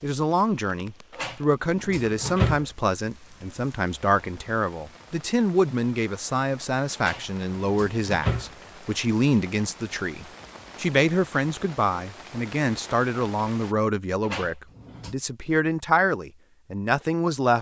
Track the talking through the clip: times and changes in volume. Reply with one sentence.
The talking can be heard from 0.0 to 17.5 s, at a steady volume.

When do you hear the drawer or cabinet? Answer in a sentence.
The drawer or cabinet can be heard from 1.1 to 2.6 s, from 7.0 to 8.5 s and from 14.2 to 15.2 s.